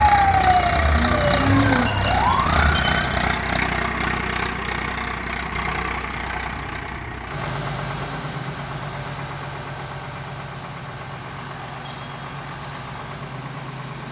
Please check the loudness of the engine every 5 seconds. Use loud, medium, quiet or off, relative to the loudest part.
loud, medium, quiet.